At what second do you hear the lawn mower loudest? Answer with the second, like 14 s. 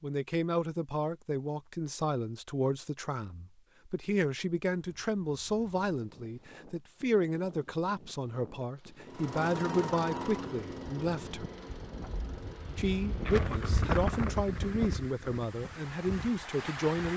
10 s.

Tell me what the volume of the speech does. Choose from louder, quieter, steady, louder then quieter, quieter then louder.
steady.